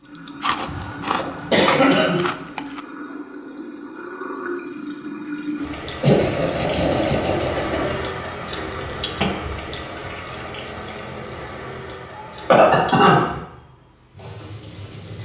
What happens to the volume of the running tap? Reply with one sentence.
The loudness of the running tap goes up, then down.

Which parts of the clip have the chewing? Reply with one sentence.
You can hear the chewing from 0.2 to 2.8 s.